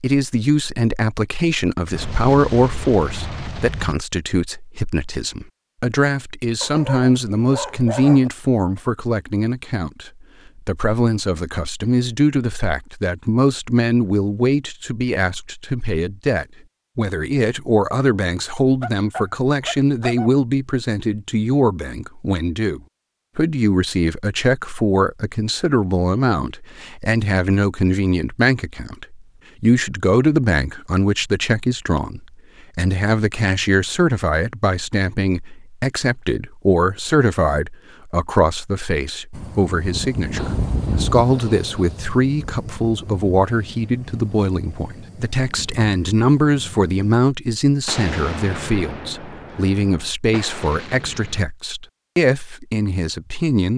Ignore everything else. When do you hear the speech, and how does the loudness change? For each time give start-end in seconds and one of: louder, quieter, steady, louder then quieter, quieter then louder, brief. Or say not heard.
0.0-53.7 steady.